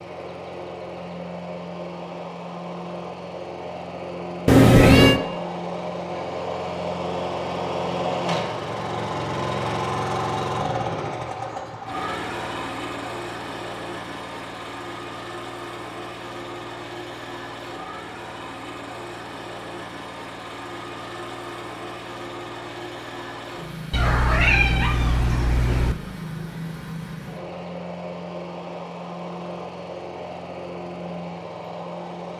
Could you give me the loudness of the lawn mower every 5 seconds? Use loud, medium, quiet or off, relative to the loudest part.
medium, loud, loud, medium, medium, medium, medium.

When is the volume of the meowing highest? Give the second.
5 s.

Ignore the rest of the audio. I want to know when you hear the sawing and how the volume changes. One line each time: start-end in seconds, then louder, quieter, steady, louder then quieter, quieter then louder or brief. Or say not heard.
not heard.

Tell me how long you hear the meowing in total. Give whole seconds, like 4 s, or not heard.
3 s.